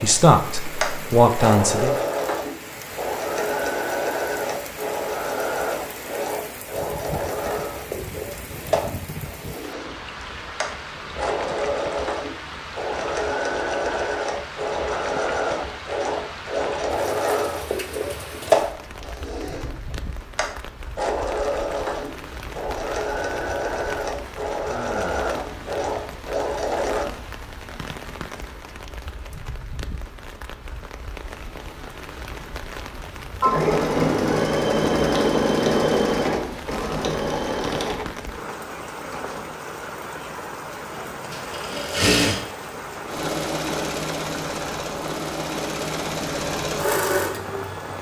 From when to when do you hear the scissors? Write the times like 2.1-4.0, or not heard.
not heard.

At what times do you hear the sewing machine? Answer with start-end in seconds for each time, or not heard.
0.0-27.1, 33.4-39.5, 40.9-47.9.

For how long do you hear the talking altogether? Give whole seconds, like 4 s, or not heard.
2 s.